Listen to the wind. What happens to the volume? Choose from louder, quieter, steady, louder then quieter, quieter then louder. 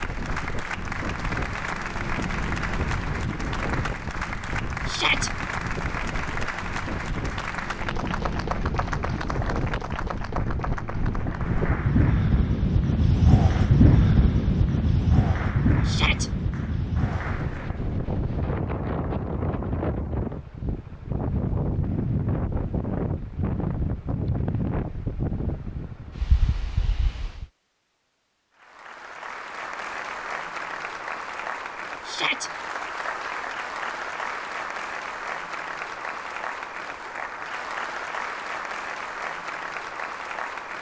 louder then quieter.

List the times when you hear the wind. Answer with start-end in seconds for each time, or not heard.
0.0-27.5.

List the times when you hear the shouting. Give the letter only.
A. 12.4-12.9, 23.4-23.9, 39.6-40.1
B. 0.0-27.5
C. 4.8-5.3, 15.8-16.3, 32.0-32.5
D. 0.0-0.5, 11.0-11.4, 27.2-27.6
C.